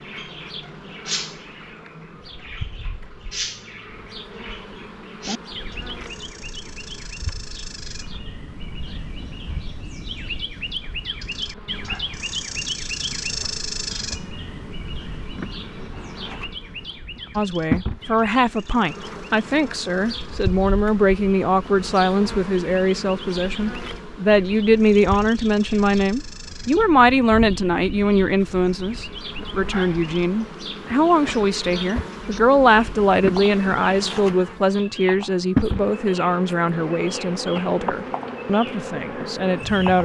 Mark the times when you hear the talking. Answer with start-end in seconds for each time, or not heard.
17.4-40.0.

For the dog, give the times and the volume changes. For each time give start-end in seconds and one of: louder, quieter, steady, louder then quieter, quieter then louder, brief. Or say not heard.
not heard.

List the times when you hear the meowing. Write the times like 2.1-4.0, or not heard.
not heard.